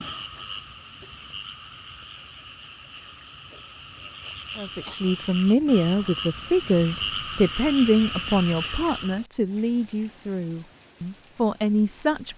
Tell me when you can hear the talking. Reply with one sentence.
The talking can be heard from 4.5 to 12.3 s.